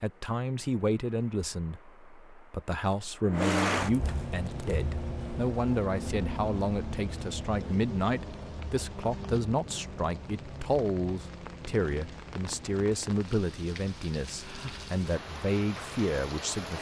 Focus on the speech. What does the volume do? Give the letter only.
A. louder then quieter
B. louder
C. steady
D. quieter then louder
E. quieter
C.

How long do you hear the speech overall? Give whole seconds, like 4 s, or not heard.
17 s.